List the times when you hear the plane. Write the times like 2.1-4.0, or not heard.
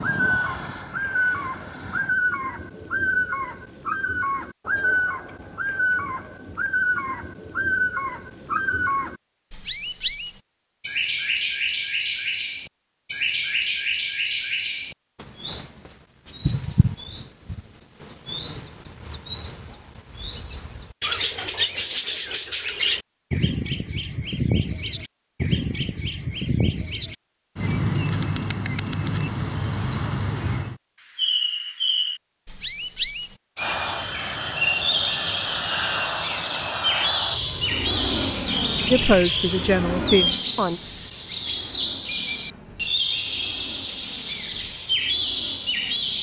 0.0-2.1, 33.5-46.1.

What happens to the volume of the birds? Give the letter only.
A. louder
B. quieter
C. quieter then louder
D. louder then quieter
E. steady
E.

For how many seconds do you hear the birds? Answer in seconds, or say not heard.
46 s.